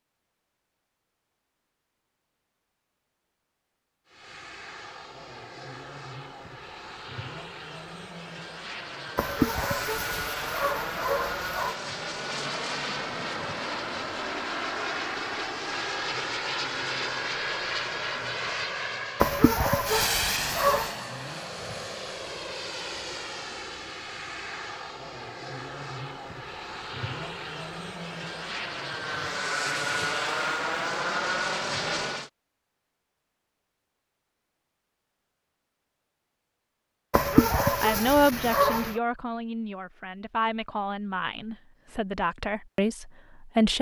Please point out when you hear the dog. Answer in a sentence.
You can hear the dog from 9.2 to 11.8 s, from 19.2 to 20.9 s and from 37.1 to 39.0 s.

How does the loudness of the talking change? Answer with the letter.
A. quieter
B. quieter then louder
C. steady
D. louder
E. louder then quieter
B.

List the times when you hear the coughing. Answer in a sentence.
You can't hear the coughing here.